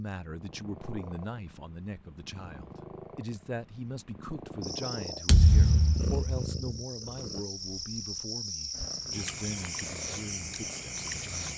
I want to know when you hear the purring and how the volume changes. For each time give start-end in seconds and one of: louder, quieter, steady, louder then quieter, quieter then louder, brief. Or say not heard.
0.1-11.5 louder then quieter.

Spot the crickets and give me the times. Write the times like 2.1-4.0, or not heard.
4.6-11.5.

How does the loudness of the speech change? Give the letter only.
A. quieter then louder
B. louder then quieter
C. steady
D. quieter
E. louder
C.